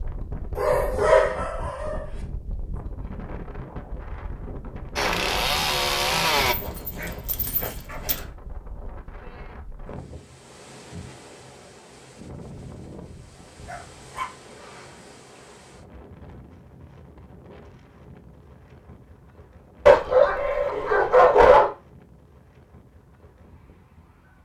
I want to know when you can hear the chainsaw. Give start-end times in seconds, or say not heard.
5.0-6.5.